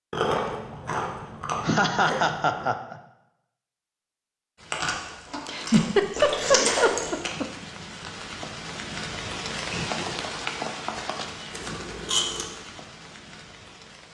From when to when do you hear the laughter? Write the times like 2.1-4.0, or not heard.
1.6-3.0, 5.5-7.5, 9.7-10.3.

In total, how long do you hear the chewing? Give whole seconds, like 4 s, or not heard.
6 s.